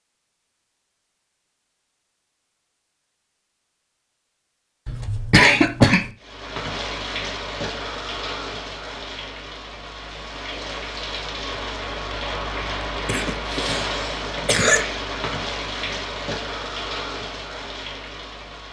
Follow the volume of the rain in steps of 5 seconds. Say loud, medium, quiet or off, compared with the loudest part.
off, loud, loud, loud.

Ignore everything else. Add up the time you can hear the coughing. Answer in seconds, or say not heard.
3 s.